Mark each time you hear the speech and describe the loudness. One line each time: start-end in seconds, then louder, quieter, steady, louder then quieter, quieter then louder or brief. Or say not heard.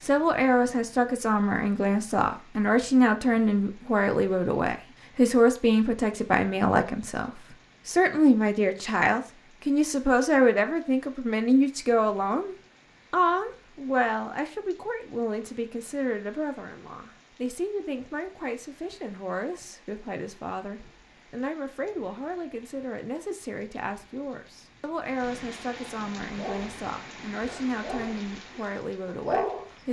0.0-29.8 quieter.